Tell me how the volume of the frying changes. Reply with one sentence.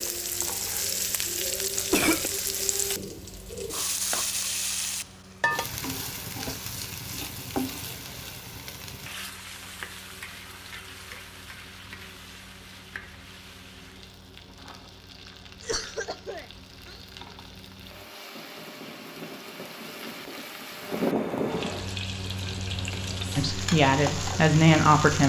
The loudness of the frying goes down, then up.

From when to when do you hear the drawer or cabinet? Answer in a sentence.
The drawer or cabinet can't be heard in this clip.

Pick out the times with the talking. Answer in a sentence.
The talking can be heard from 23.4 to 25.2 s.